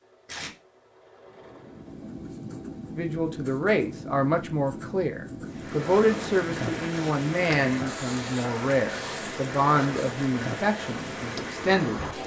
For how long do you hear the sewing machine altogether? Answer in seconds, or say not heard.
2 s.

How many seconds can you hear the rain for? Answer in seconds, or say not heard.
7 s.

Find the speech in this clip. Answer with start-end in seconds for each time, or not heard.
3.0-12.2.